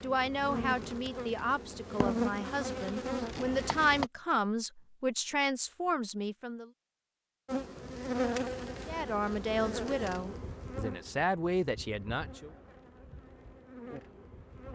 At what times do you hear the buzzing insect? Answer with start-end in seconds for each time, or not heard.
0.0-4.1, 7.5-14.7.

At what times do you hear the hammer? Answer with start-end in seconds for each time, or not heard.
not heard.